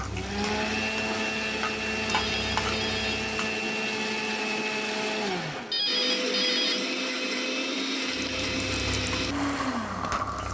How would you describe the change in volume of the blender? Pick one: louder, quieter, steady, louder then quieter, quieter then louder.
steady.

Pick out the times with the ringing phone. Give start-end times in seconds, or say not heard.
2.1-3.2, 5.7-6.8.